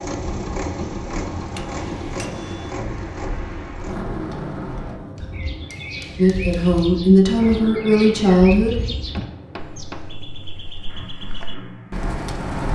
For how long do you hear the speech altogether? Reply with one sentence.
You can hear the speech for 3 seconds altogether.